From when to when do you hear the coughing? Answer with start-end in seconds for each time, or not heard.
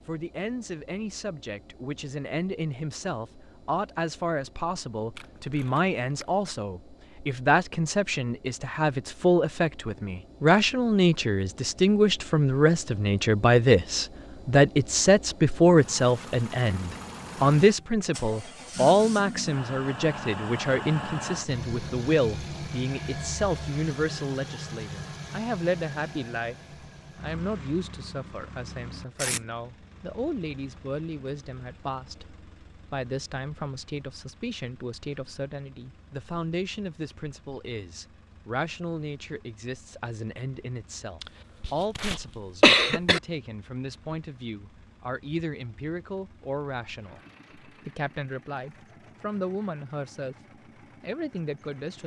41.2-43.2.